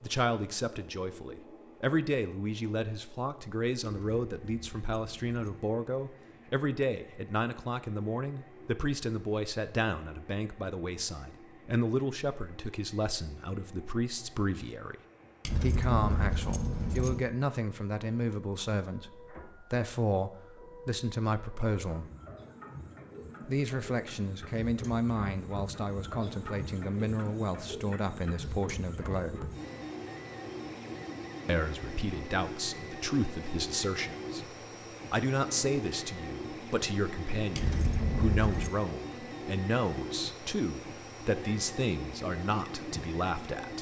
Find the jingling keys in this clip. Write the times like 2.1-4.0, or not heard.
3.9-5.7, 15.4-17.2, 37.5-38.7.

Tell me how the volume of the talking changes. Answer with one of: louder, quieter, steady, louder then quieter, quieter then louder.
steady.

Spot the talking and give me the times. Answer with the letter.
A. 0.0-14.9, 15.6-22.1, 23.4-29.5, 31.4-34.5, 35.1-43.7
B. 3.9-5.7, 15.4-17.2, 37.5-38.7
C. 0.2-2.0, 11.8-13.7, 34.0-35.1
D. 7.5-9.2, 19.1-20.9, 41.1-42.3
A.